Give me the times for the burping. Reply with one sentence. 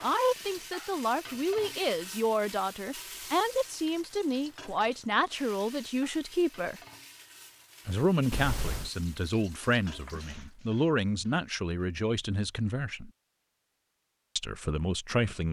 The burping can't be heard in this clip.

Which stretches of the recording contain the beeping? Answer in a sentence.
You can hear the beeping from 8.3 to 8.9 s.